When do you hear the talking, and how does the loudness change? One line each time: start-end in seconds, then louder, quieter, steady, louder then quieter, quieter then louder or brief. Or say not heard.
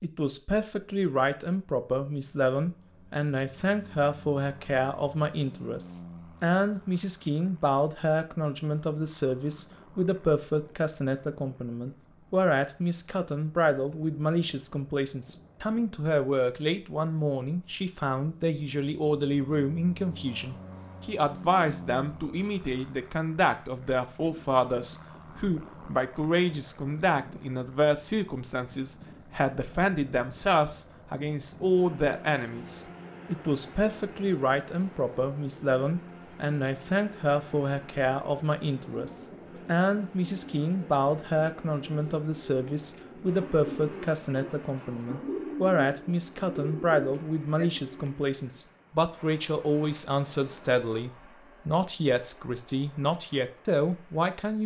0.0-54.6 steady.